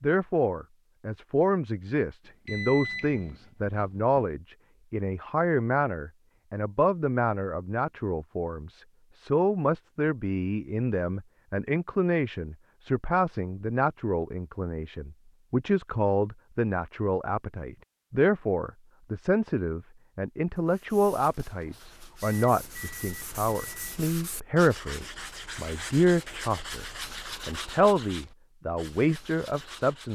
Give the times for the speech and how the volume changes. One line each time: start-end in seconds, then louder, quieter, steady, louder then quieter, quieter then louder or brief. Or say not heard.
0.0-26.9 steady
27.4-30.1 brief.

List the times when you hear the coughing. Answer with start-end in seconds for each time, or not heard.
not heard.